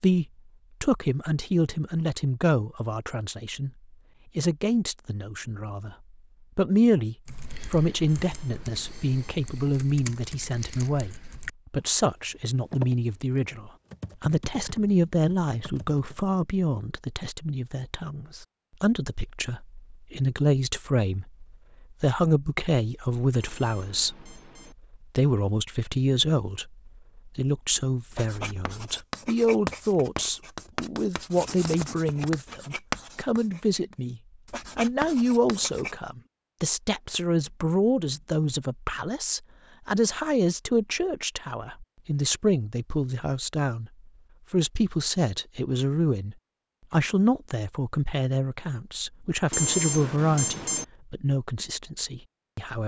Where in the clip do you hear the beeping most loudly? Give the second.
50 s.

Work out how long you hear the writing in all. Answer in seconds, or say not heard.
8 s.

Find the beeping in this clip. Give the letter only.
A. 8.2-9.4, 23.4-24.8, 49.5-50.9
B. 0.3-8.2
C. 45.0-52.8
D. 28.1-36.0
A.